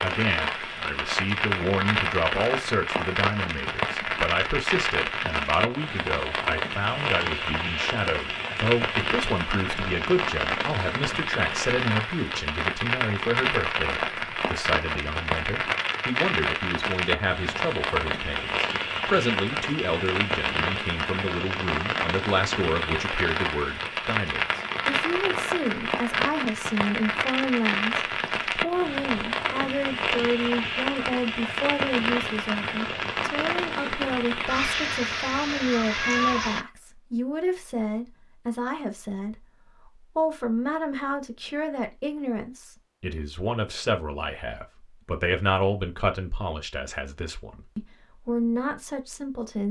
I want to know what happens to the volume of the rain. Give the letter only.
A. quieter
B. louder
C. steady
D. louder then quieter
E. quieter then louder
C.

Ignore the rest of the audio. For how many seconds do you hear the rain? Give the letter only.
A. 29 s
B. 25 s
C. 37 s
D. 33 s
C.